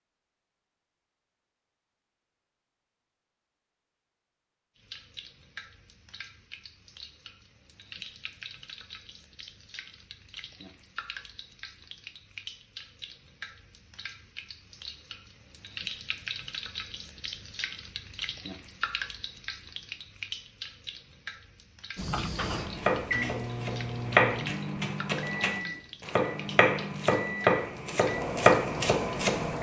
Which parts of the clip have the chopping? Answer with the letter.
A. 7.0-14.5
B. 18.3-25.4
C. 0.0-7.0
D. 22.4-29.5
D.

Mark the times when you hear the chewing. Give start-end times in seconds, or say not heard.
not heard.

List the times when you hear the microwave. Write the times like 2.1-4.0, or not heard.
21.9-29.5.